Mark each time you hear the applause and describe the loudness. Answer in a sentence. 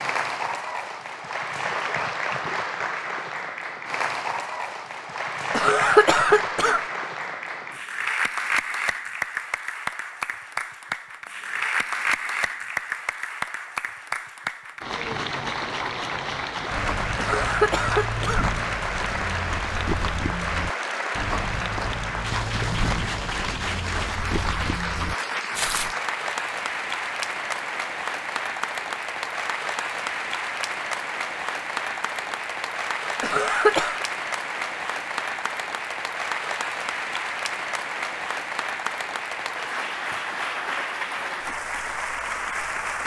You can hear the applause from 0.0 to 43.0 s, at a steady volume.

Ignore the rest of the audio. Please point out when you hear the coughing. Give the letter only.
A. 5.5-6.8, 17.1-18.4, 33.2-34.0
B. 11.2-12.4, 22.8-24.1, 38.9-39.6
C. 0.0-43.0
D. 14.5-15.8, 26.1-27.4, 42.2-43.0
A.